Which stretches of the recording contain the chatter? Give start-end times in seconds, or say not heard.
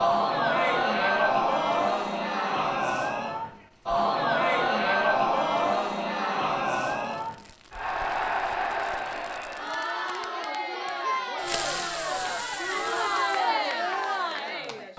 0.0-14.9.